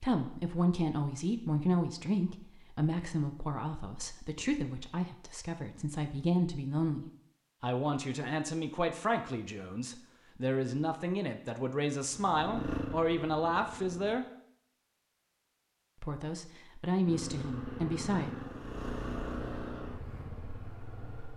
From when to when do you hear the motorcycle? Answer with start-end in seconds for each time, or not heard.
12.1-14.2, 17.0-21.3.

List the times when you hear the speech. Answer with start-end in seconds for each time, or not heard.
0.0-14.2, 16.0-18.3.